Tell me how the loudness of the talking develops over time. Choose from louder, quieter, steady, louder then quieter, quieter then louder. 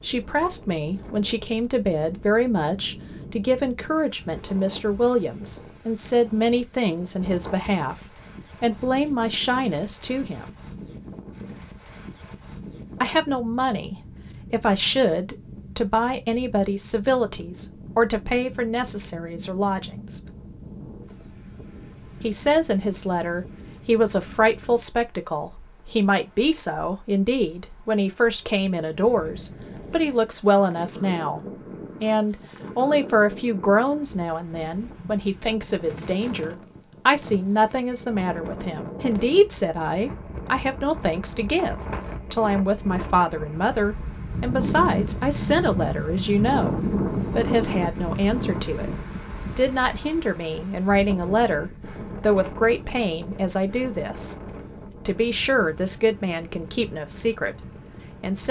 steady.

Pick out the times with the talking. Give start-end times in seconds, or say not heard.
0.0-10.5, 13.0-20.2, 22.2-48.9, 49.5-54.4, 55.0-58.4.